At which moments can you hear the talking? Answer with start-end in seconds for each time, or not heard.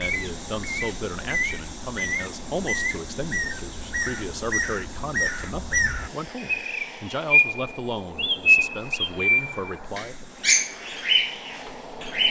0.0-10.2.